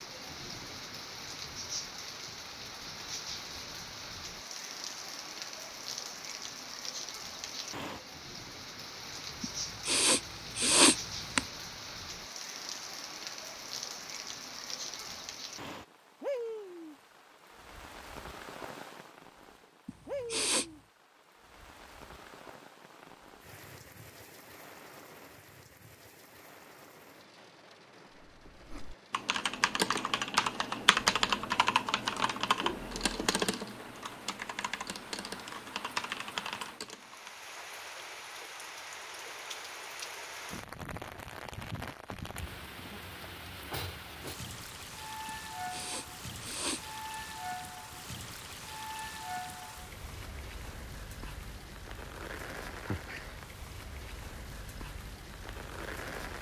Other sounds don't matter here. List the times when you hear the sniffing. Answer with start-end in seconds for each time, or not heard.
9.4-11.4, 19.9-20.8, 45.2-46.8.